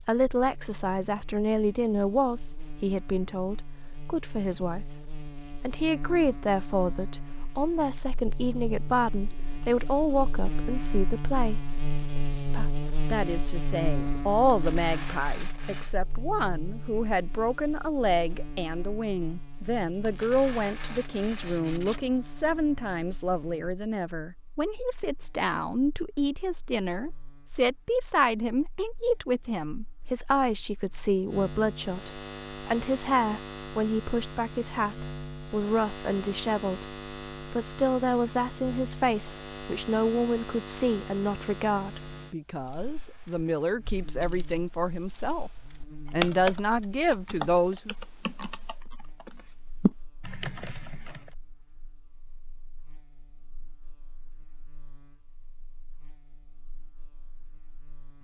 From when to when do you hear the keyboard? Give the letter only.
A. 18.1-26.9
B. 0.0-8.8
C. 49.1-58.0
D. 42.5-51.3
D.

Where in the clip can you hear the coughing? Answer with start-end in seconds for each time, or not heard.
not heard.